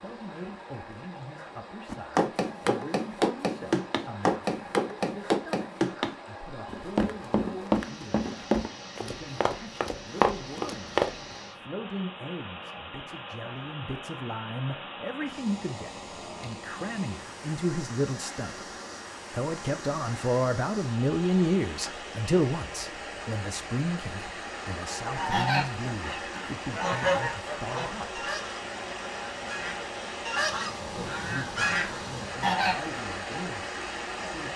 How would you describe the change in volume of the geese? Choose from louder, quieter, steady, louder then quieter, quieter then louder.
quieter then louder.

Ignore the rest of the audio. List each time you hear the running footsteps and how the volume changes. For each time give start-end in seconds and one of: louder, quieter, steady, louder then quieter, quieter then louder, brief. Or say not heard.
1.9-11.2 steady.